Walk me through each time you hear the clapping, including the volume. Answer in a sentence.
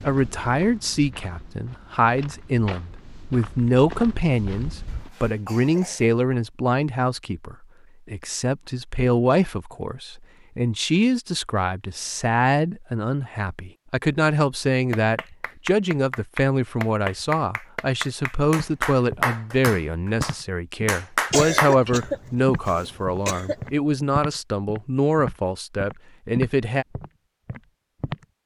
The clapping can be heard from 14.9 to 21.8 s, getting louder.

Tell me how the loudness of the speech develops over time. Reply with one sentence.
The loudness of the speech stays about the same.